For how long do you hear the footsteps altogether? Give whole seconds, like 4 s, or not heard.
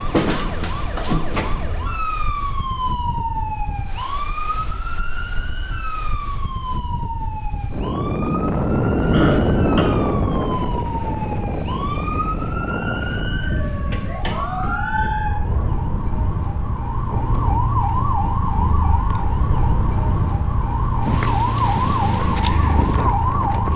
not heard.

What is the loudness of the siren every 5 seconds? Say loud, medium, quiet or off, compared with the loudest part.
loud, medium, medium, loud, loud.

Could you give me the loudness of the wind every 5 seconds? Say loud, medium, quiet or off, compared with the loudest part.
quiet, loud, loud, medium, loud.